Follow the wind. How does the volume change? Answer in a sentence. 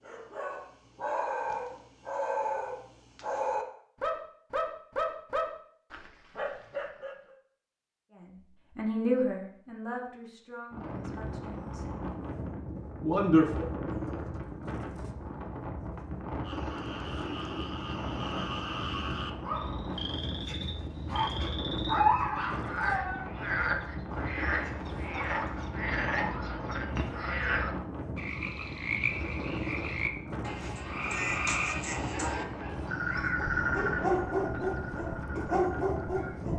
The loudness of the wind stays about the same.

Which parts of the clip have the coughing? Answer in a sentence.
You can't hear the coughing here.